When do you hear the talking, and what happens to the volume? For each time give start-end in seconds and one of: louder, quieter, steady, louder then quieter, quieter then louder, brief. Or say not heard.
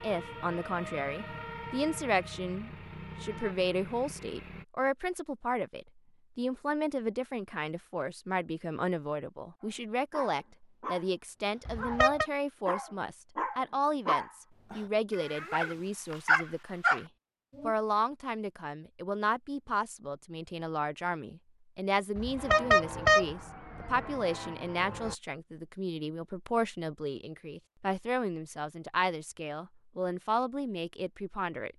0.0-31.7 steady.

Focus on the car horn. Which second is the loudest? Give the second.
23 s.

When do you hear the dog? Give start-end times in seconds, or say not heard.
9.6-17.8.